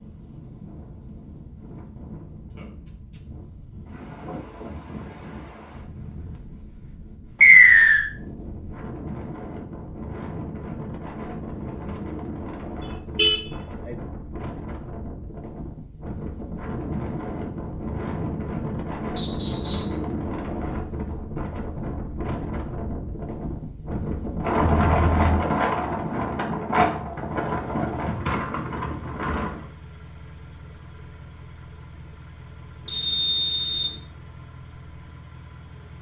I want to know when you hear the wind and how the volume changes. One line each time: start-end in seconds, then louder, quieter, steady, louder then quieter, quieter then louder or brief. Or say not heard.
0.0-29.6 louder.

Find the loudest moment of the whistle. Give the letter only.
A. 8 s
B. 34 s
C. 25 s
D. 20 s
A.